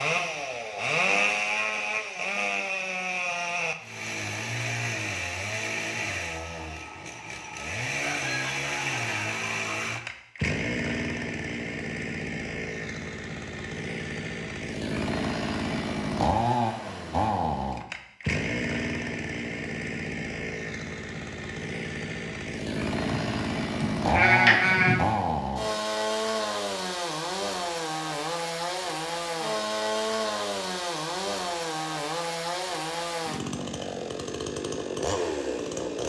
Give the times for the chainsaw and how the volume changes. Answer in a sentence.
The chainsaw can be heard from 0.0 to 36.0 s, at a steady volume.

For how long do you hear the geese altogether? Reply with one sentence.
The geese can be heard for 2 seconds in total.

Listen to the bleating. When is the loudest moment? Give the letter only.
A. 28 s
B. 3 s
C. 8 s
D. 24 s
D.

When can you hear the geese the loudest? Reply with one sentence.
The loudest moment of the geese is at 8 seconds.